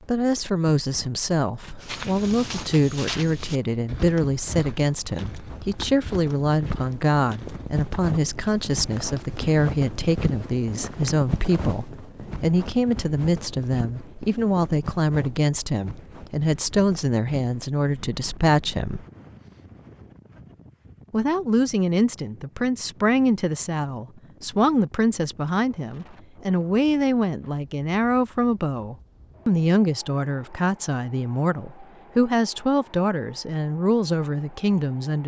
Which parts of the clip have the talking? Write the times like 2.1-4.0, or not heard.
0.1-19.1, 21.1-35.2.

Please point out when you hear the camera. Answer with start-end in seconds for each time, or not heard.
not heard.